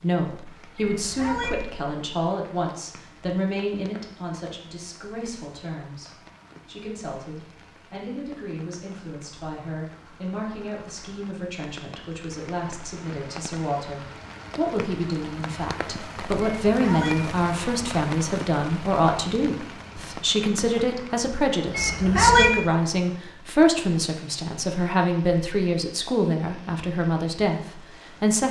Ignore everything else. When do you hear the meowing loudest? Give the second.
22 s.